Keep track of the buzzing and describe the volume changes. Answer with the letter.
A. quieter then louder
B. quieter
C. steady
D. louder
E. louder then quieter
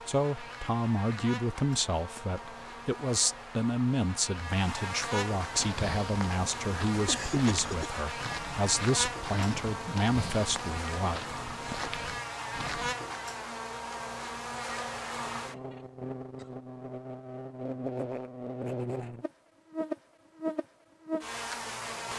D.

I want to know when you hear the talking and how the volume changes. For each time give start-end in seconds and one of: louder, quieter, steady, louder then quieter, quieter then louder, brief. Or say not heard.
0.1-11.2 steady.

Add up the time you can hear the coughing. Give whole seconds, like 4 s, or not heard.
2 s.